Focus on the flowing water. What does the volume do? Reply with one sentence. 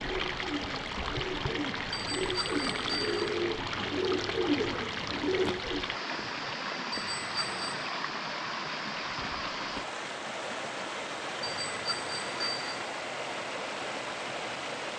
The loudness of the flowing water stays about the same.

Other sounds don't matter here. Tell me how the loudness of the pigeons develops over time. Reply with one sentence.
The loudness of the pigeons goes up.